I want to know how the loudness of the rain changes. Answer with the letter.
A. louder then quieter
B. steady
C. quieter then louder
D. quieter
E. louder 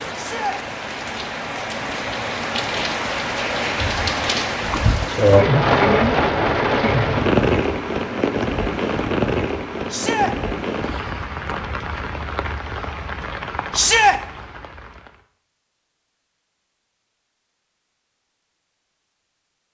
A.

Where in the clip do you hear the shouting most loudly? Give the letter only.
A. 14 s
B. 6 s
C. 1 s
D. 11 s
A.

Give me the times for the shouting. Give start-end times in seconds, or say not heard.
0.1-0.6, 9.9-10.3, 13.7-14.2.